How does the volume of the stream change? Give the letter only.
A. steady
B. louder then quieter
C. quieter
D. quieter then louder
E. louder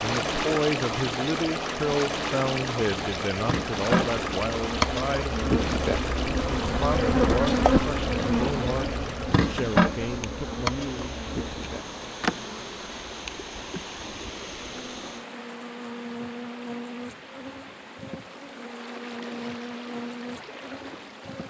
C.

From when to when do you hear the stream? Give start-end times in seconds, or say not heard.
0.0-21.4.